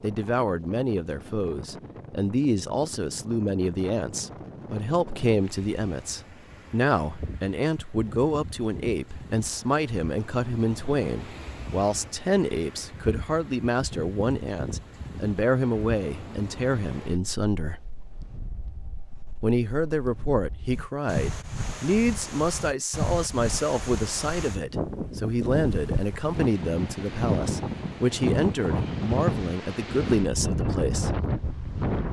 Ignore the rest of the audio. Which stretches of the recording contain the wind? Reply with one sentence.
The wind can be heard from 0.0 to 32.0 s.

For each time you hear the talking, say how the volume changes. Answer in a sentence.
The talking can be heard from 0.0 to 17.8 s, at a steady volume; and from 19.4 to 31.2 s, at a steady volume.